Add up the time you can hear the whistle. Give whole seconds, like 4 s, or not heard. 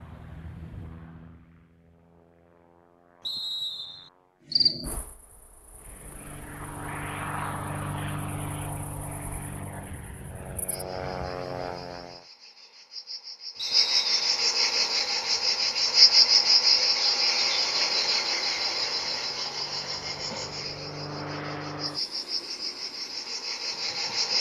2 s.